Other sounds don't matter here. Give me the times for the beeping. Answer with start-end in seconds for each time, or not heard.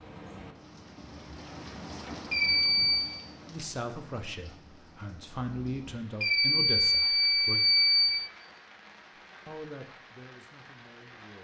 2.3-3.1, 6.2-8.3.